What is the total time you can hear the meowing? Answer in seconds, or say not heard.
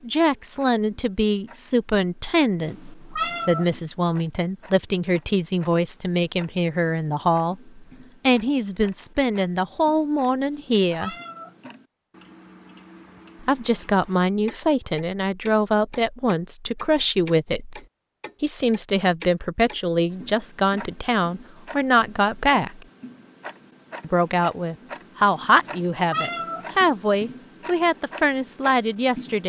4 s.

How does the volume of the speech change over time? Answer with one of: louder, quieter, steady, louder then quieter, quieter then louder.
steady.